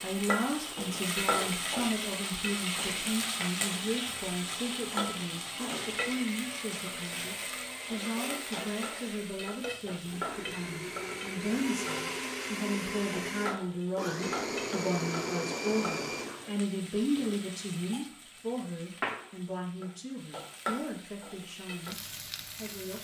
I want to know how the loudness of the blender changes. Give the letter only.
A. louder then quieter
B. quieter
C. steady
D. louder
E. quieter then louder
D.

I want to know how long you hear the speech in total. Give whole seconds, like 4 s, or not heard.
23 s.